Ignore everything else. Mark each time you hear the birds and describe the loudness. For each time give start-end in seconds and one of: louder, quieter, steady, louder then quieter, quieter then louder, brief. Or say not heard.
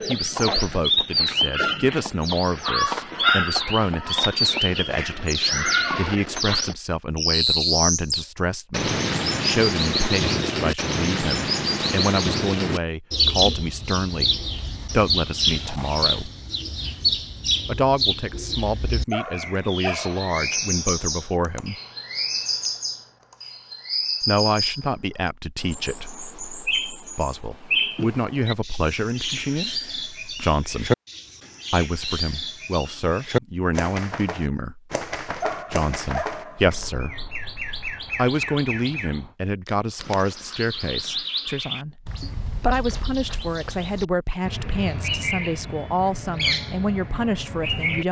0.0-48.0 quieter.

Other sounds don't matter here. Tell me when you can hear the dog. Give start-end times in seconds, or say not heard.
19.1-20.6, 35.4-36.9.